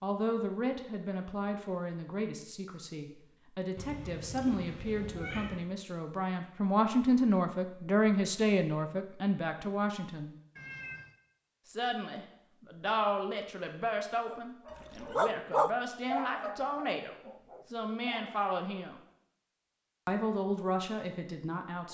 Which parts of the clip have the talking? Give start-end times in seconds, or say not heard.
0.0-10.3, 11.7-19.0, 20.1-21.8.